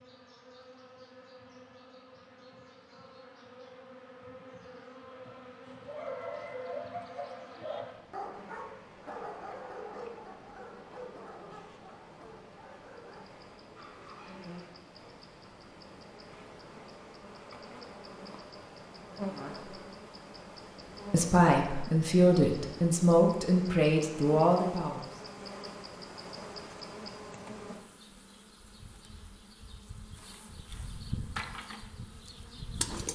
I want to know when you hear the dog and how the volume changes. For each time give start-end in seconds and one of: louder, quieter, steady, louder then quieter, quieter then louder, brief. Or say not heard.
5.7-14.6 quieter.